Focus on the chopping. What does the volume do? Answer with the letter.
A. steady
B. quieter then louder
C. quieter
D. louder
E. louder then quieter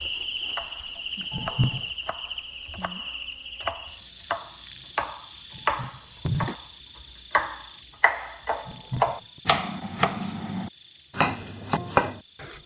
D.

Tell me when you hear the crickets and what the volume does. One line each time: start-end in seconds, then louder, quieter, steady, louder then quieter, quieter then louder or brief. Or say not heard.
0.0-12.6 quieter.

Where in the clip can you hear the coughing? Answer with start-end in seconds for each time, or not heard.
1.3-1.9, 5.5-6.5, 8.7-9.4.